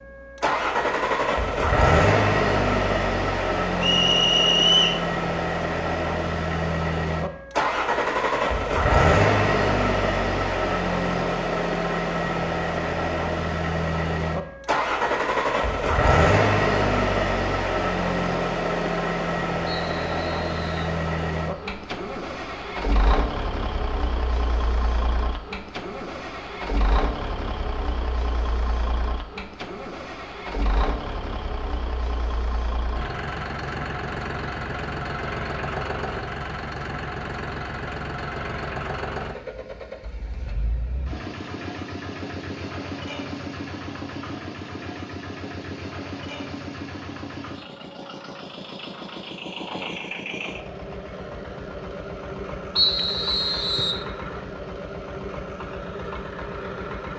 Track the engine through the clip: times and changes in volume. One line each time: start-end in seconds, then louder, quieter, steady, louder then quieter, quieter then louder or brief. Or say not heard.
0.0-57.1 quieter.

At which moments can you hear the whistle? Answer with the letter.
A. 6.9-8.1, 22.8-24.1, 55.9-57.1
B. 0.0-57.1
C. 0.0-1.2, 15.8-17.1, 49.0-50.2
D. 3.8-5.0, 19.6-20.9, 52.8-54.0
D.